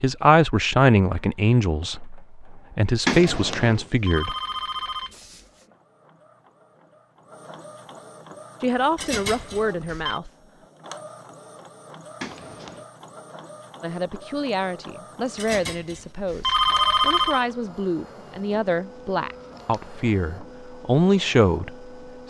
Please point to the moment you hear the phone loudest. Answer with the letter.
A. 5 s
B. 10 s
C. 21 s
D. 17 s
D.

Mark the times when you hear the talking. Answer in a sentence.
You can hear the talking from 0.0 to 4.3 s, from 8.6 to 10.3 s and from 13.8 to 22.2 s.